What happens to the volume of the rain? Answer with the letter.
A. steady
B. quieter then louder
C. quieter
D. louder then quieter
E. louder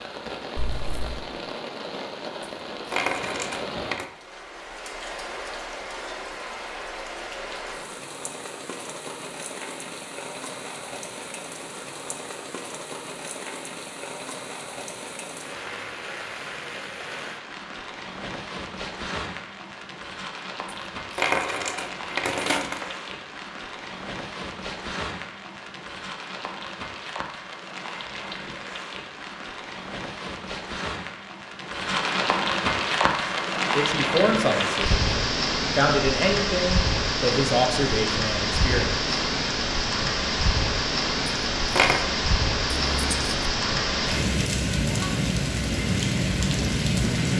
E.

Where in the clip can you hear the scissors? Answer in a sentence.
You can hear the scissors from 0.6 to 1.2 s and from 42.8 to 43.4 s.